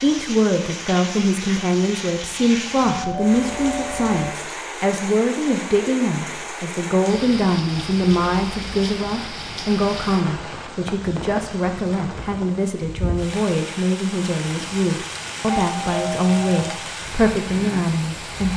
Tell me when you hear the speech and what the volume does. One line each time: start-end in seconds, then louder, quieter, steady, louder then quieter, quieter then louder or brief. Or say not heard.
0.0-18.5 steady.